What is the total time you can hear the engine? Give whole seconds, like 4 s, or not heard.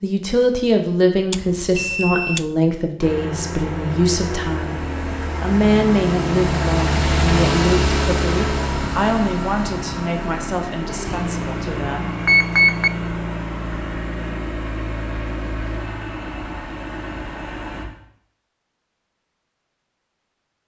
15 s.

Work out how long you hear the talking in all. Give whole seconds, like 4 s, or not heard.
12 s.